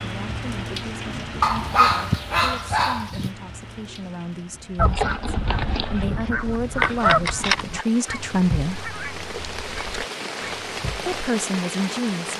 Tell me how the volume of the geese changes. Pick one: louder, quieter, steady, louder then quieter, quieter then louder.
louder then quieter.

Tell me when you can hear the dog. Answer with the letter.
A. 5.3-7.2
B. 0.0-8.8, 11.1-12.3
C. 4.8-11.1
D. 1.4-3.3
D.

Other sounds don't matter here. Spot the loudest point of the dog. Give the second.
2 s.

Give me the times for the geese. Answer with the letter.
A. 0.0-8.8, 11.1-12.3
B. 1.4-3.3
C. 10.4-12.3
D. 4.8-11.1
D.